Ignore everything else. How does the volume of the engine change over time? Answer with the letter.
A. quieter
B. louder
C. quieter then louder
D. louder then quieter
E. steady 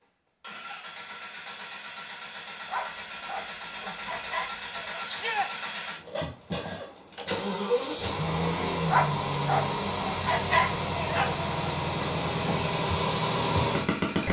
B.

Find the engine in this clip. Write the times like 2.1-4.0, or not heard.
0.0-14.2.